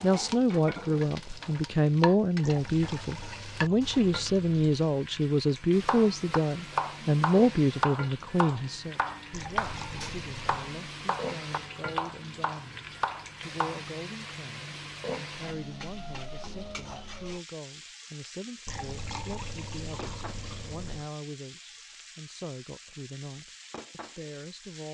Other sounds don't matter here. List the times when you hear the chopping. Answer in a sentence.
You can hear the chopping from 5.8 to 13.9 s.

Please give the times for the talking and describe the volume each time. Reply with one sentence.
You can hear the talking from 0.0 to 24.8 s, getting quieter.